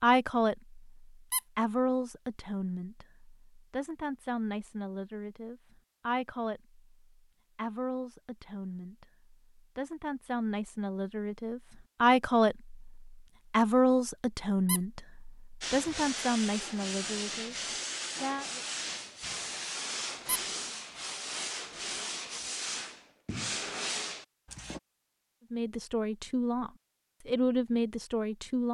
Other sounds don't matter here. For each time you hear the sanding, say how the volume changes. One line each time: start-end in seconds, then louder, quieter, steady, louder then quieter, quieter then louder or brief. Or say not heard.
15.6-24.8 steady.